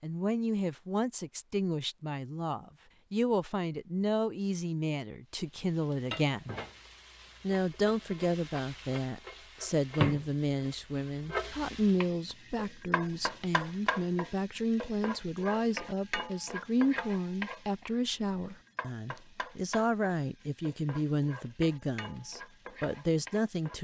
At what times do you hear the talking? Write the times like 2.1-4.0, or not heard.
0.0-6.5, 7.4-23.7.